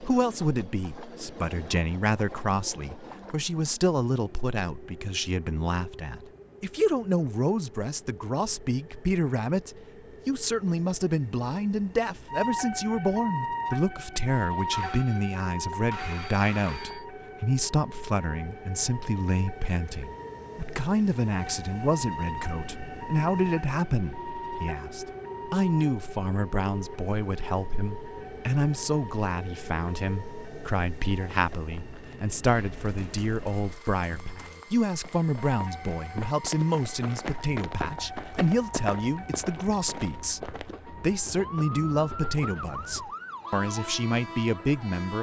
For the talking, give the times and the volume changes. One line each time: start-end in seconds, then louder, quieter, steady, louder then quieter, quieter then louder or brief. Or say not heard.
0.0-45.1 steady.